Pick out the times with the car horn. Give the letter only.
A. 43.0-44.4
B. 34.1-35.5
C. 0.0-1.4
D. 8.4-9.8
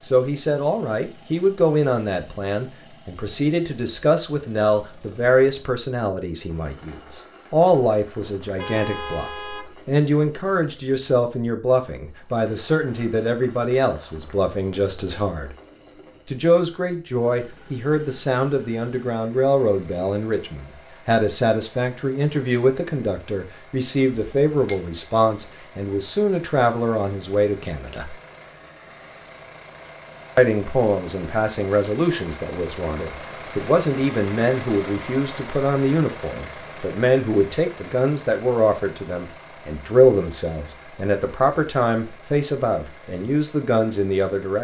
D.